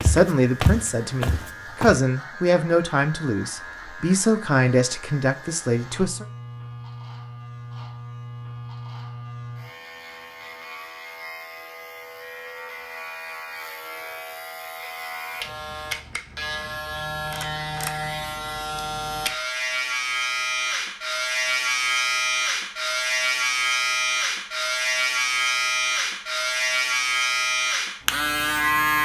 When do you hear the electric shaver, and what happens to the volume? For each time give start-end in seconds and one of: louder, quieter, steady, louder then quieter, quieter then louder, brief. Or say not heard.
0.0-29.0 louder.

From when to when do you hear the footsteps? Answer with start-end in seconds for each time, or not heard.
0.0-1.9.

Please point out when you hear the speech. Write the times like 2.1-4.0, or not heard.
0.0-6.2.